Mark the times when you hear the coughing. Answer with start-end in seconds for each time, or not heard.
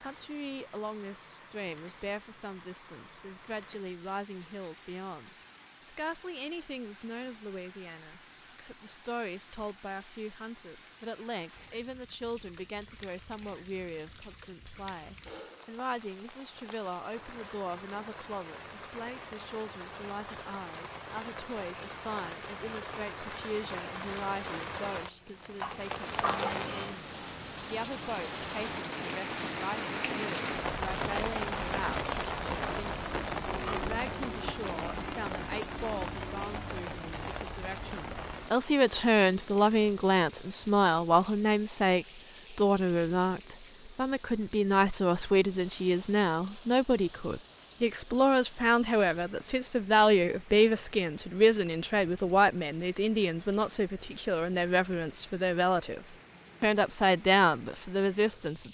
25.6-26.6.